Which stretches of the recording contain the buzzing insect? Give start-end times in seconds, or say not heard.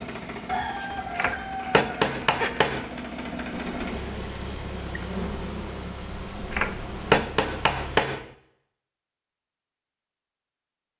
3.5-7.2.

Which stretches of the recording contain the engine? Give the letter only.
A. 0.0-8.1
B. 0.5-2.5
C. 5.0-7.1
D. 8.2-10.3
A.